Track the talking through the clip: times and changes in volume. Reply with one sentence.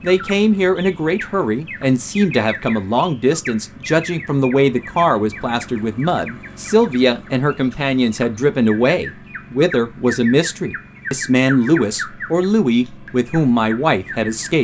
You can hear the talking from 0.0 to 14.5 s, at a steady volume.